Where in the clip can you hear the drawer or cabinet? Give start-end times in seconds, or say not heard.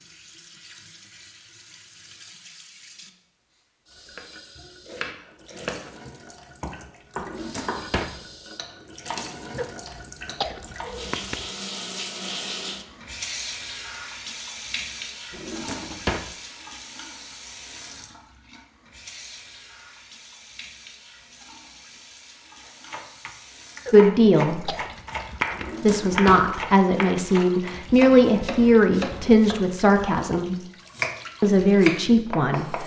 7.2-8.2, 15.3-16.3, 25.5-26.5.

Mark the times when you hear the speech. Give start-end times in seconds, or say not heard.
23.9-24.6, 25.8-30.6, 31.4-32.8.